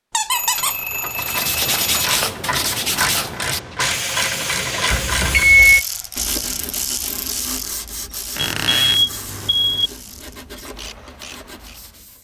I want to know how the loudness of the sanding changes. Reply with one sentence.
The volume of the sanding goes down.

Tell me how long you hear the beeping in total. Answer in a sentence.
You can hear the beeping for 4 seconds altogether.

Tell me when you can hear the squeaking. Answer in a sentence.
You can hear the squeaking from 0.1 to 0.8 s and from 8.3 to 9.0 s.